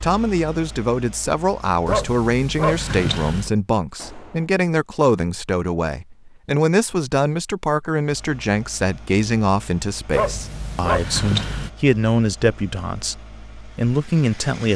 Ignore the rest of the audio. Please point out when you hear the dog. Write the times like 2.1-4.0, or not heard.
1.9-3.5, 10.1-11.7.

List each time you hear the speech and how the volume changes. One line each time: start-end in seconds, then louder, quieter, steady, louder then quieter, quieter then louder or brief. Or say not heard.
0.0-14.7 steady.